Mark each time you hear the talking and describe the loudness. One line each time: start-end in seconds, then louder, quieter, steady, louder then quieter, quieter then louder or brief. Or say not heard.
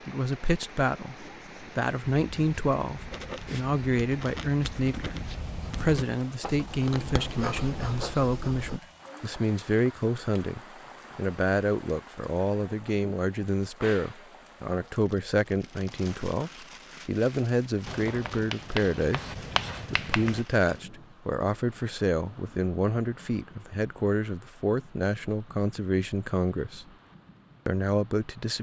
0.1-26.9 steady
27.6-28.5 brief.